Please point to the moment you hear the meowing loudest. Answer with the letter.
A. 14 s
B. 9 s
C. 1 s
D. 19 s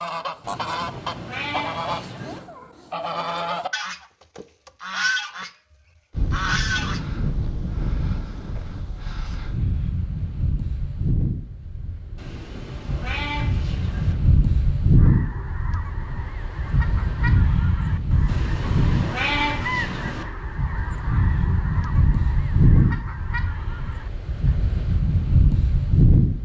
D.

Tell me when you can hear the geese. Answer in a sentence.
The geese can be heard from 0.0 to 5.5 s, from 6.2 to 7.0 s and from 14.9 to 24.6 s.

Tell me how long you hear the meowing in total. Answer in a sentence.
You can hear the meowing for 6 seconds altogether.